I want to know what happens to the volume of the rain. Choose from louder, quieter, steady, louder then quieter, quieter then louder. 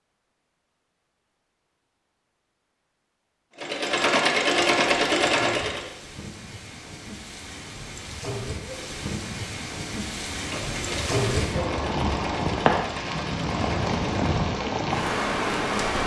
louder.